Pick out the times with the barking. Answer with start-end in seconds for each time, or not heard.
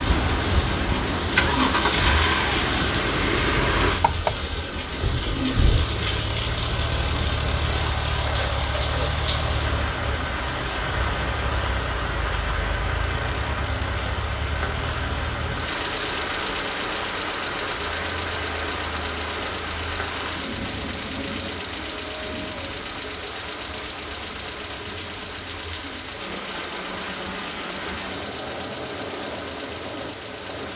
not heard.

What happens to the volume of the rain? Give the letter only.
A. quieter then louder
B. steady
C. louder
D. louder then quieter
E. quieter
E.